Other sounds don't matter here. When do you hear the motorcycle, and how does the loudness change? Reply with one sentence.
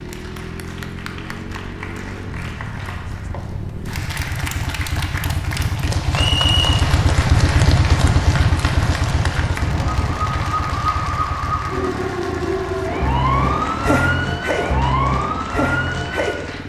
The motorcycle can be heard from 0.0 to 16.6 s, getting louder then quieter.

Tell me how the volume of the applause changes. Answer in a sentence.
The volume of the applause goes up, then down.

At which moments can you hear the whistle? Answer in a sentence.
You can hear the whistle from 6.2 to 6.8 s.